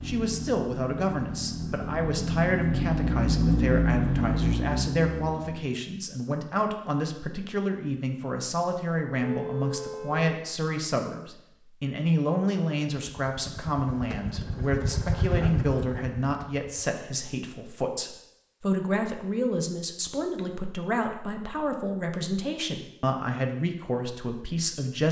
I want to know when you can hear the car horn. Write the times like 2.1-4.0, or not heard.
9.2-10.3.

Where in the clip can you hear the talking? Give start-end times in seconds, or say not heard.
0.1-25.0.